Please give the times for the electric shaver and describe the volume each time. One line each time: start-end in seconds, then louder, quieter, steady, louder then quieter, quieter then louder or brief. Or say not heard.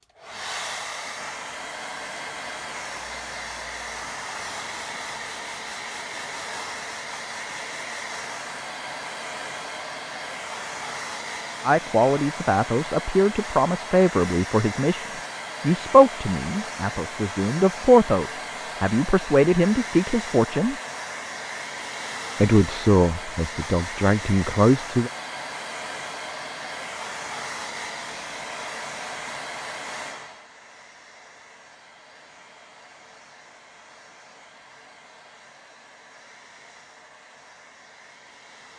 not heard.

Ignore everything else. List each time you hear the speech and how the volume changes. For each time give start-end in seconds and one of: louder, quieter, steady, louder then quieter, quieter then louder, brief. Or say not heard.
11.6-20.8 steady
22.4-25.1 brief.